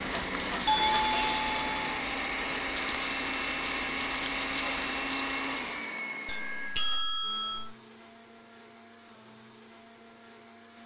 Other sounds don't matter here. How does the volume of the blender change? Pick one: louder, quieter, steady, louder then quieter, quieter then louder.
quieter.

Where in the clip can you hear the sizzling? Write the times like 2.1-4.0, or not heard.
0.0-6.0.